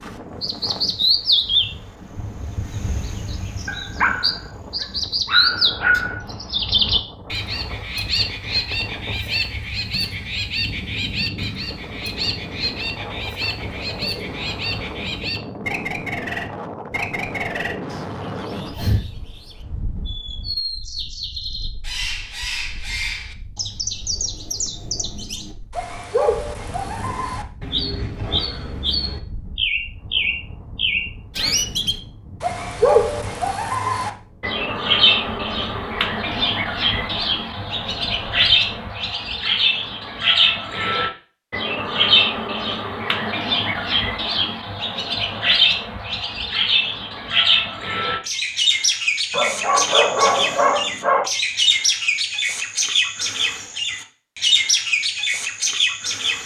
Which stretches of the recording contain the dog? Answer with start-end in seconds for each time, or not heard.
3.6-6.2, 49.3-51.3.